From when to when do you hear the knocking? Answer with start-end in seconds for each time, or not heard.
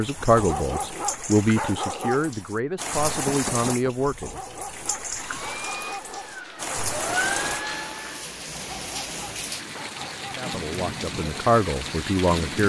3.1-3.9.